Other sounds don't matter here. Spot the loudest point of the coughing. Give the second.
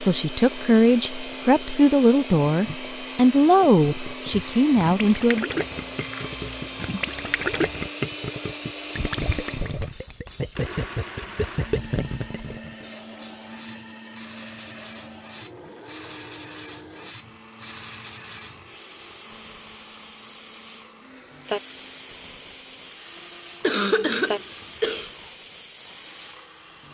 24 s.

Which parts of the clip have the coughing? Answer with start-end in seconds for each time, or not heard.
23.6-25.1.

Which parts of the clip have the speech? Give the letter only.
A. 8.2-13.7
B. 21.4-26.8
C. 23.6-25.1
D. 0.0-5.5
D.